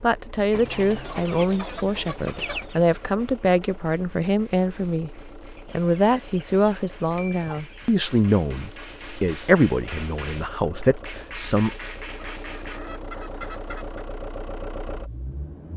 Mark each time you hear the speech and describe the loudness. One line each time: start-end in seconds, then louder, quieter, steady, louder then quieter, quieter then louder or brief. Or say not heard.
0.0-11.7 steady.